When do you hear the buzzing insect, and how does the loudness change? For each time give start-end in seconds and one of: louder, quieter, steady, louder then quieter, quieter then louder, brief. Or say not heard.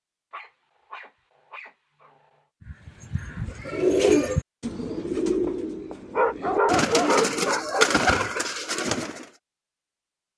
not heard.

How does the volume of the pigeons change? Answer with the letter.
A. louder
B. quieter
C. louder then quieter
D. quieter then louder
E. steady
D.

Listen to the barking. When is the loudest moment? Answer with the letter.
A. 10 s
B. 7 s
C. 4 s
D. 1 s
B.